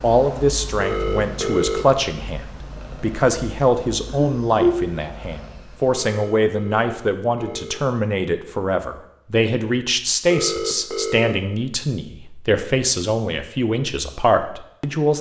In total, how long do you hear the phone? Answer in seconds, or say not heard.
4 s.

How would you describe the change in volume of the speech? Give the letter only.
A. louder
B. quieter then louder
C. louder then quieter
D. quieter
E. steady
E.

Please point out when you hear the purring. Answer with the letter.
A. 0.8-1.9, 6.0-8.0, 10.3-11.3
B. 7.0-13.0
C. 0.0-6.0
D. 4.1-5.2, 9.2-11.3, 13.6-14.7
C.